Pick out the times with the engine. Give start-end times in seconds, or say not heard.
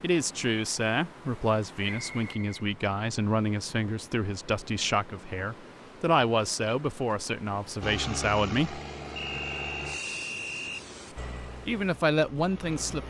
7.8-13.0.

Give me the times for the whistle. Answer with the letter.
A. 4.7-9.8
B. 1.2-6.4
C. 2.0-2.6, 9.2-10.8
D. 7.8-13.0
C.